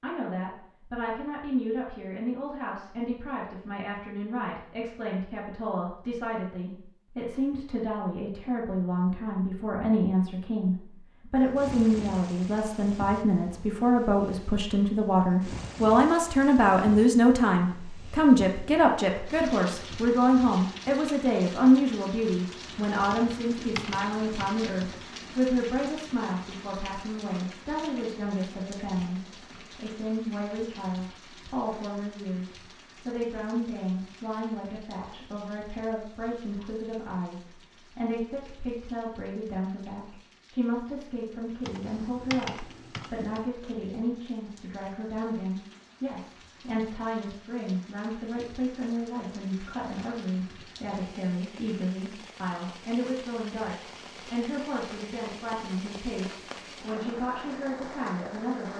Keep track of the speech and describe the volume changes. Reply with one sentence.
The loudness of the speech goes up, then down.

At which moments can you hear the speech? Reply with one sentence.
The speech can be heard from 0.0 to 58.7 s.